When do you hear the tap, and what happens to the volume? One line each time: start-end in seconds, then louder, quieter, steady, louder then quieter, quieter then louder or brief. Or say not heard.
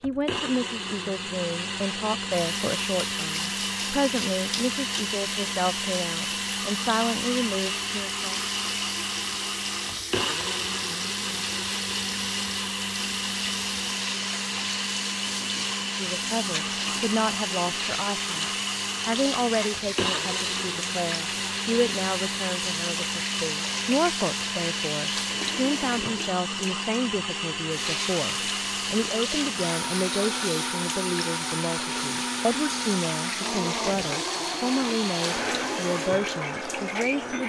2.3-37.4 steady.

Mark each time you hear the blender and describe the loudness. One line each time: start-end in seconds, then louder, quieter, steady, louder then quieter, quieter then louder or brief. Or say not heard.
0.0-37.4 steady.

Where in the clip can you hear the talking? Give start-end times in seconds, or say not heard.
0.0-8.4, 15.8-37.4.